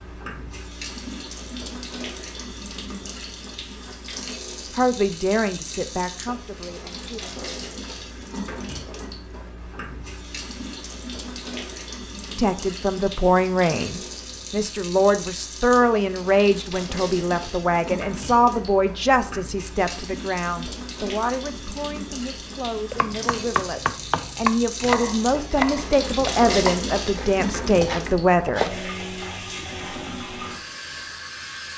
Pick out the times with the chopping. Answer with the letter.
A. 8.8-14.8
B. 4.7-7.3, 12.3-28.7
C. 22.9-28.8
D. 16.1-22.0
C.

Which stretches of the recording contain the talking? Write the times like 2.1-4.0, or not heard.
4.7-7.3, 12.3-28.7.